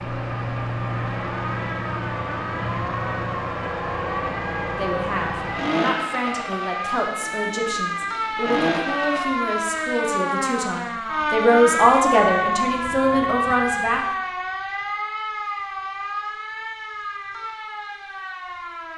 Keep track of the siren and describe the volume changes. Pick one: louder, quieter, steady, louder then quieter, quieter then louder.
louder then quieter.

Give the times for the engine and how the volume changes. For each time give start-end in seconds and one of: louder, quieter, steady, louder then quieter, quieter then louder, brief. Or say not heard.
0.0-9.2 steady.